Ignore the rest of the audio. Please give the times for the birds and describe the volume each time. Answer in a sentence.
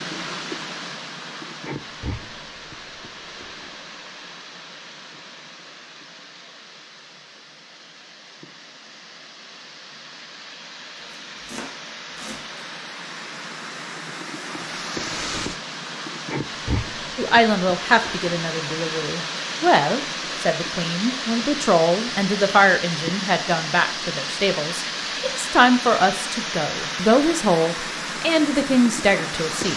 The birds can't be heard in this clip.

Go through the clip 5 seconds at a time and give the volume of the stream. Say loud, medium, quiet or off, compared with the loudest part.
medium, quiet, medium, loud, loud, loud.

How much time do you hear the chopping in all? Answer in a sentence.
You can hear the chopping for 2 seconds altogether.